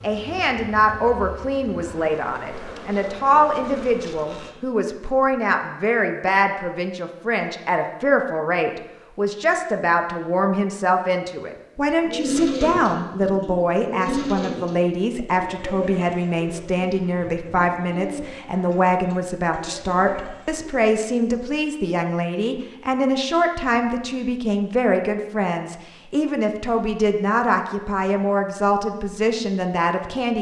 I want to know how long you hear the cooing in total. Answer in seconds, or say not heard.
9 s.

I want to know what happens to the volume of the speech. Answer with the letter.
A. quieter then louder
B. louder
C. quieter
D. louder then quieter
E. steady
E.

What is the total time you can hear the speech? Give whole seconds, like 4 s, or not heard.
30 s.